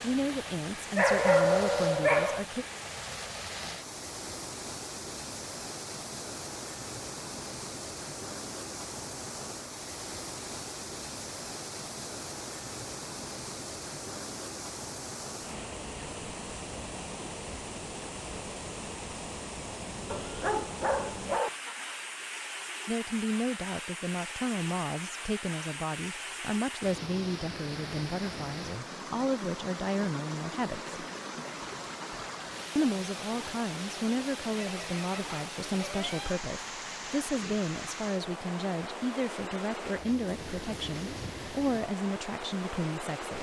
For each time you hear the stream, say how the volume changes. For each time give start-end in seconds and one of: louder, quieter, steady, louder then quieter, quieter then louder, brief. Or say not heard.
0.0-43.3 steady.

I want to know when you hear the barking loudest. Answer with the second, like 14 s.
1 s.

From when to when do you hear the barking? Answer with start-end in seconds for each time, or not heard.
0.9-2.5, 20.1-21.8, 34.5-36.5.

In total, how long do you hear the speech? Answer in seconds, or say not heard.
21 s.